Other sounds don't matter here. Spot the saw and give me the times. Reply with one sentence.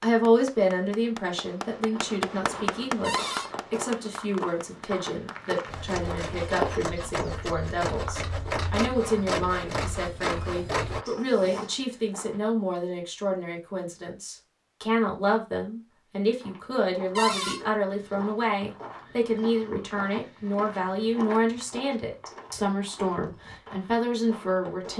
You can hear the saw from 5.7 to 11.1 s.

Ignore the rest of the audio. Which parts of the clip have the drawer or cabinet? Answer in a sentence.
You can hear the drawer or cabinet from 3.0 to 3.5 s, from 11.1 to 11.7 s and from 17.1 to 17.6 s.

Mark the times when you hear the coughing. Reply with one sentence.
You can't hear the coughing here.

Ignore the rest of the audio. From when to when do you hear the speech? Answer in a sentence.
You can hear the speech from 0.0 to 24.9 s.